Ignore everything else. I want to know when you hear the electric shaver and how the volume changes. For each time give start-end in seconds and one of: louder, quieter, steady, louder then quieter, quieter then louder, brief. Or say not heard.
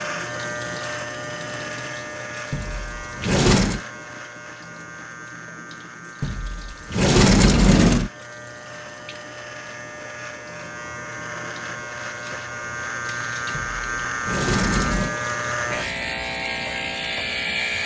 0.0-17.8 quieter then louder.